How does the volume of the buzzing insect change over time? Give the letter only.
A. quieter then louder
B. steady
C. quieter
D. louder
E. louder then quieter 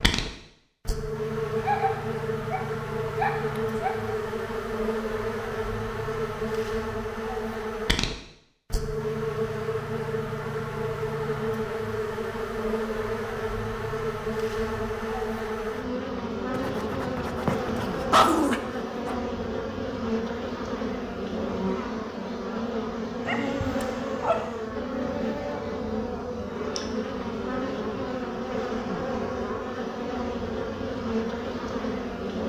B.